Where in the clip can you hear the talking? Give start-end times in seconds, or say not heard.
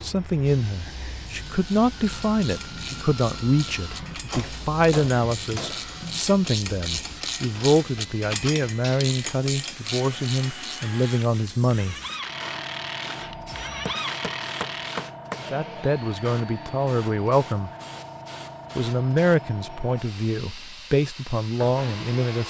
0.0-11.9, 15.5-17.7, 18.8-22.4.